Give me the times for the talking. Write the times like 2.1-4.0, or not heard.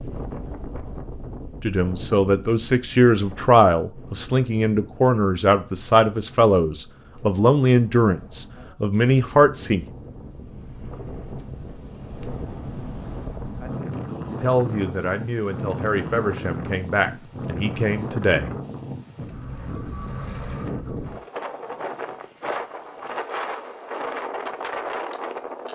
1.6-9.8, 14.4-18.5.